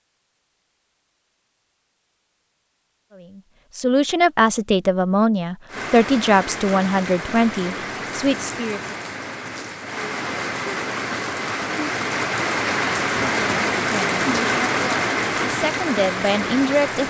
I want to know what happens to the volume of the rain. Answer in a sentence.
The loudness of the rain goes up.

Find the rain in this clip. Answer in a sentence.
The rain can be heard from 5.7 to 17.0 s.